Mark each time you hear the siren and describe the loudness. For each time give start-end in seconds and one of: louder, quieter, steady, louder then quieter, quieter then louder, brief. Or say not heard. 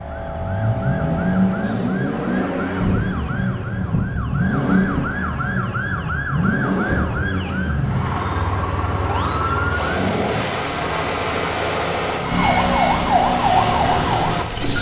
0.0-14.7 louder.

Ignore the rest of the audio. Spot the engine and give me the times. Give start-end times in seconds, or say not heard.
0.0-14.7.